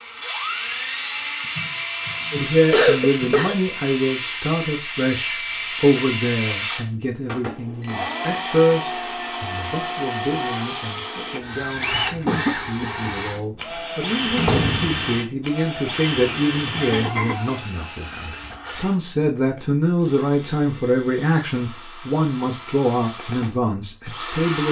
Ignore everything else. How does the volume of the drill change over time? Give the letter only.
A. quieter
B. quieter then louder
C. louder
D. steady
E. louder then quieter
A.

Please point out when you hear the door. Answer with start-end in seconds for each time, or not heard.
14.3-15.2.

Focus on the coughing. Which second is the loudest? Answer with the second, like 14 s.
3 s.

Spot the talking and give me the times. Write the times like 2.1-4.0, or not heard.
2.3-24.6.